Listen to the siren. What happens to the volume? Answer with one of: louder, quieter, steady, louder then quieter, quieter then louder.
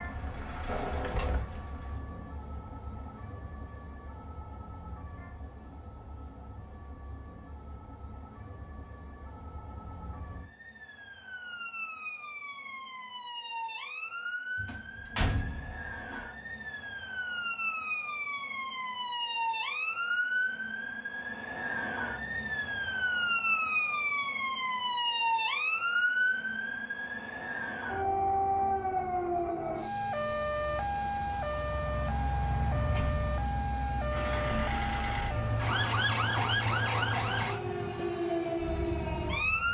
louder.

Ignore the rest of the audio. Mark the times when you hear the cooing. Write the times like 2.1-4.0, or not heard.
not heard.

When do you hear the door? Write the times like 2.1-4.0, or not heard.
0.7-1.6, 14.6-16.2, 32.8-33.2.